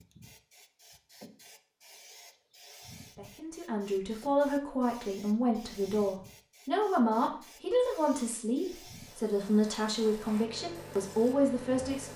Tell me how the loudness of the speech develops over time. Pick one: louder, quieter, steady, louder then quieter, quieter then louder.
steady.